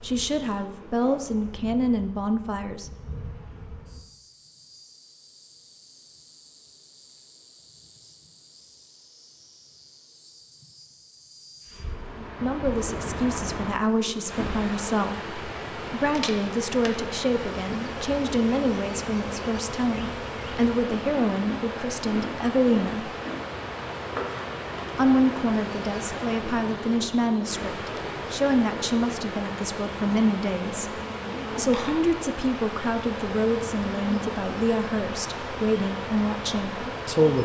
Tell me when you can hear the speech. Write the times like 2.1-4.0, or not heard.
0.0-2.9, 12.2-23.1, 24.9-30.9, 31.6-37.3.